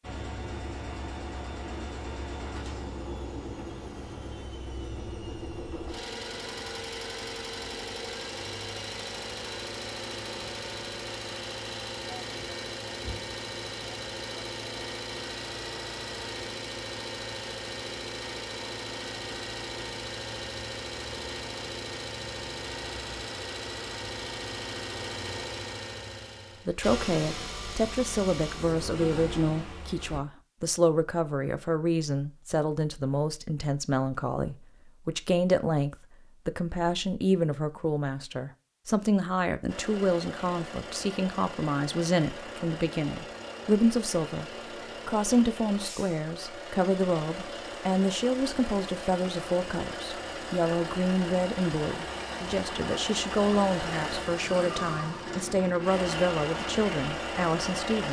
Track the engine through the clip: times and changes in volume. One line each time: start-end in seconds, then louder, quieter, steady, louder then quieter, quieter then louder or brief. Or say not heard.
0.0-30.2 steady
39.6-58.0 louder.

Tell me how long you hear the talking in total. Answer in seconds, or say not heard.
31 s.